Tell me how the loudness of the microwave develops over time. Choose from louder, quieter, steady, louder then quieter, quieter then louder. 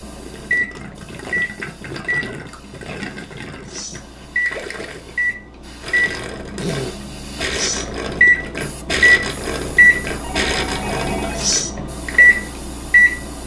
louder.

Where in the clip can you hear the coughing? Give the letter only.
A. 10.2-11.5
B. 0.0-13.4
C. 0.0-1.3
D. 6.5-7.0
D.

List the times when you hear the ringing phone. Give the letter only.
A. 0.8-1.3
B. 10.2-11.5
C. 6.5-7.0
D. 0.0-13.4
B.